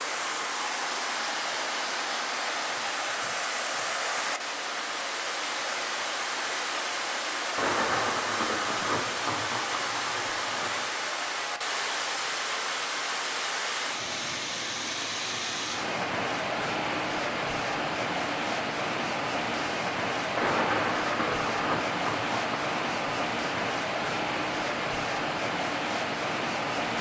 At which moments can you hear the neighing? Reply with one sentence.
The neighing can't be heard in this clip.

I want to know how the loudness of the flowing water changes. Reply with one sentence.
The volume of the flowing water stays about the same.